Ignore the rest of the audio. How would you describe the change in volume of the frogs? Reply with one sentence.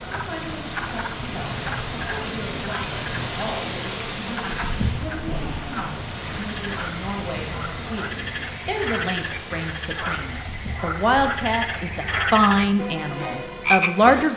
The loudness of the frogs goes up.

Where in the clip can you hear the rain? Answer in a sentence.
The rain can be heard from 0.0 to 14.3 s.